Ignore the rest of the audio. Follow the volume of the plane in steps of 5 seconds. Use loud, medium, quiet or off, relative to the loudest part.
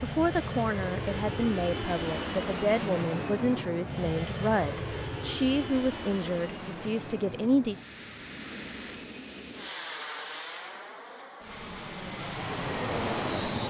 loud, medium, loud.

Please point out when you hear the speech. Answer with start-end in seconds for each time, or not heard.
0.0-7.8.